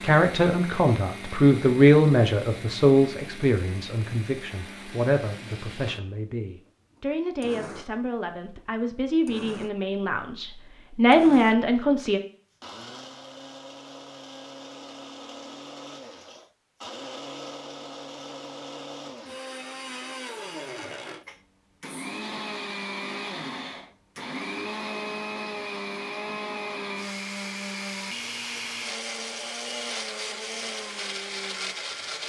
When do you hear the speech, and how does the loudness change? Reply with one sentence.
The speech can be heard from 0.0 to 12.2 s, getting quieter then louder.